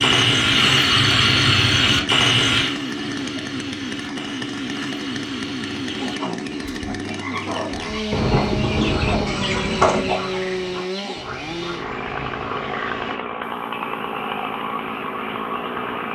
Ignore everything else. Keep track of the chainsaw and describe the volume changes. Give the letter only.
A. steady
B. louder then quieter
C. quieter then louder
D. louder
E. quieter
A.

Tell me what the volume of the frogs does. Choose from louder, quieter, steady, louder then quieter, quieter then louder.
quieter.